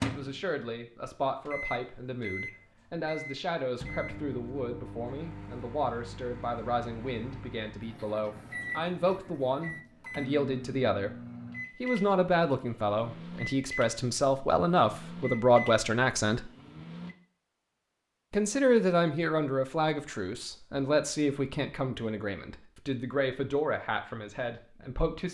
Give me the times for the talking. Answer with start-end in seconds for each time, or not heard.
0.0-11.1, 11.8-16.5, 18.3-25.2.